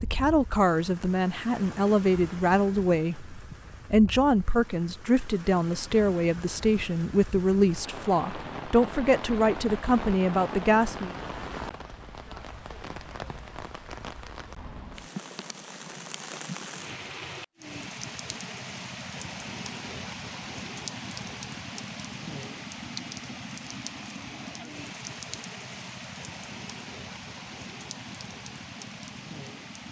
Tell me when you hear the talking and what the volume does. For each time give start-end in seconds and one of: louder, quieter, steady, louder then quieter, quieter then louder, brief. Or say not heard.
0.0-11.1 steady.